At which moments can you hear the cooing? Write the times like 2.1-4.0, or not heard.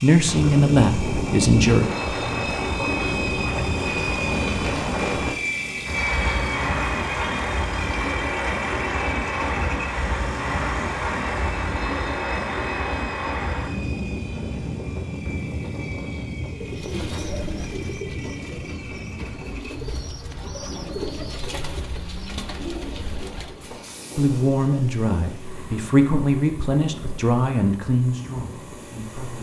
16.4-23.8.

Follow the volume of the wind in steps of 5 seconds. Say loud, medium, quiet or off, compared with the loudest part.
loud, loud, loud, medium, quiet, quiet.